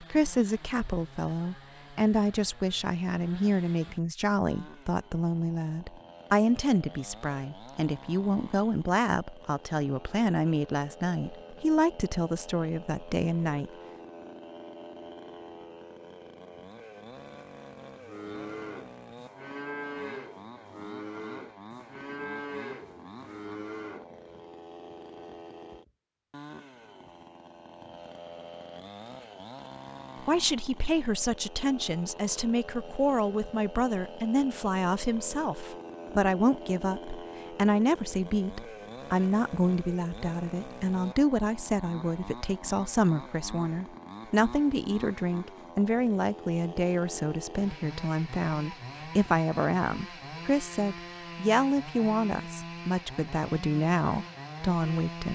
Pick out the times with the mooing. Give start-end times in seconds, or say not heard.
17.9-24.1.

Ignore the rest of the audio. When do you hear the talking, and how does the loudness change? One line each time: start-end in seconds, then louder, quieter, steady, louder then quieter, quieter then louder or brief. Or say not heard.
0.0-13.7 steady
30.2-55.2 steady.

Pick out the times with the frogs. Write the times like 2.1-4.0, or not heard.
not heard.